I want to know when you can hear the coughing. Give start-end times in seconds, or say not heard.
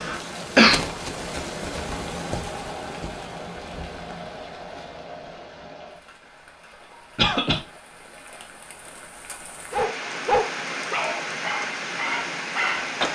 0.1-0.8, 7.2-7.6.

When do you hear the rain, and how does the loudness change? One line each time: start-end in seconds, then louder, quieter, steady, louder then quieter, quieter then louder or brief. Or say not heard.
0.0-13.1 quieter then louder.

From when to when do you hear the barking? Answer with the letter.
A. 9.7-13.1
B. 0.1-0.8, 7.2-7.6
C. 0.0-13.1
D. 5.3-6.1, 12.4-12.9
A.